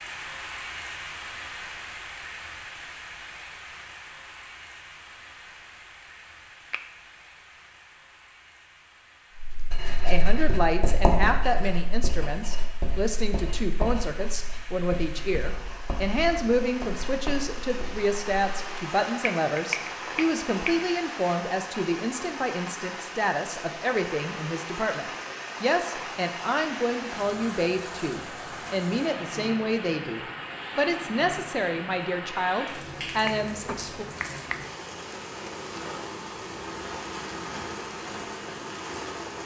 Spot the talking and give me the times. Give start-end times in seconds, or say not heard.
10.1-34.0.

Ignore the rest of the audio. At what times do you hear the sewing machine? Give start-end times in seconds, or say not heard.
not heard.